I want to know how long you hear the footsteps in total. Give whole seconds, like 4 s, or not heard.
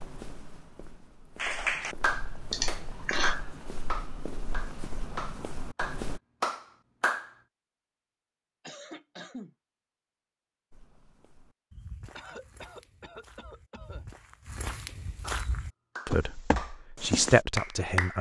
13 s.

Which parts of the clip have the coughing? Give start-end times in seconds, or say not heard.
2.5-3.4, 8.6-9.6, 12.2-14.1.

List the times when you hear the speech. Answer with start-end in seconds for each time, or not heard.
16.1-18.1.